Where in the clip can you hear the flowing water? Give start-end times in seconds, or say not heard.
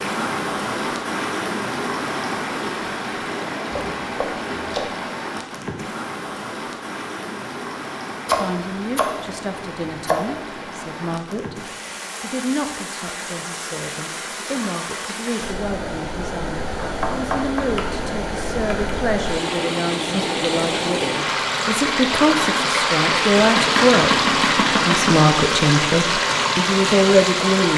0.0-27.7.